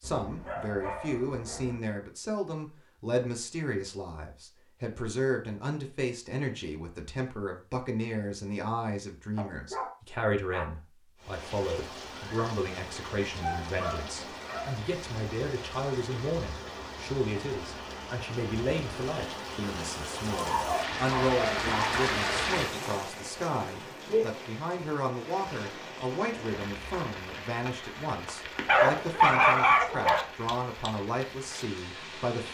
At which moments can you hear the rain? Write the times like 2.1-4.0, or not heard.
11.2-32.4.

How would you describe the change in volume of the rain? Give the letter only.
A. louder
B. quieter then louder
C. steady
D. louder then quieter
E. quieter
D.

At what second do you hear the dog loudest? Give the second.
29 s.